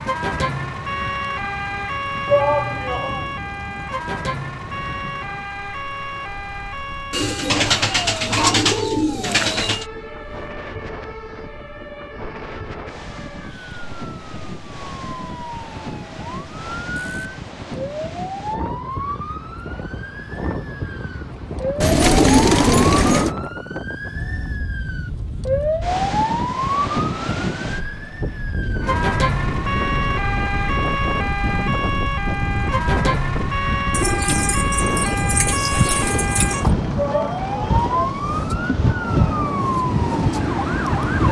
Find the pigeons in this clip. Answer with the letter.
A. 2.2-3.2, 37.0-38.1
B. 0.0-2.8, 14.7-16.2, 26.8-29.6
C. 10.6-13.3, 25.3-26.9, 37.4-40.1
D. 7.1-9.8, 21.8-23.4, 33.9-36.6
D.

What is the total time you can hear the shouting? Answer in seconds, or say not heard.
2 s.